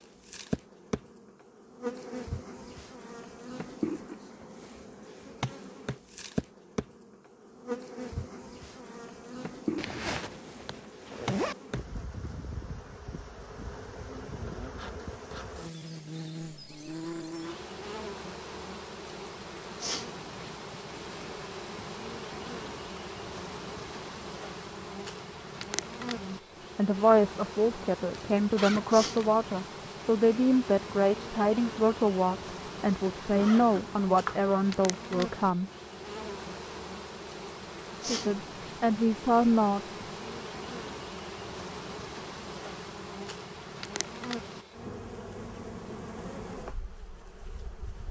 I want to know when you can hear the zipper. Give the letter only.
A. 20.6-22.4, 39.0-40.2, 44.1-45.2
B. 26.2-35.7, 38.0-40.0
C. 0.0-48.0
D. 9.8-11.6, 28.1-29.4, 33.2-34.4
D.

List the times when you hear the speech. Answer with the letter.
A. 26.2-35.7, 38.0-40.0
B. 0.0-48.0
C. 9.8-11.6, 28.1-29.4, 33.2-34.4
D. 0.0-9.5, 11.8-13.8
A.